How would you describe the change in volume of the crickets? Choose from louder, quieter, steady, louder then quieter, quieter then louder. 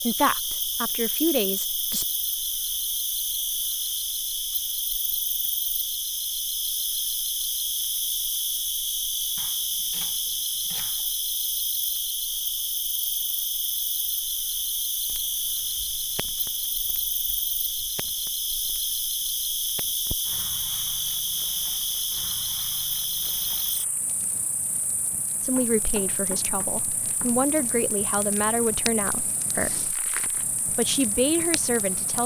quieter.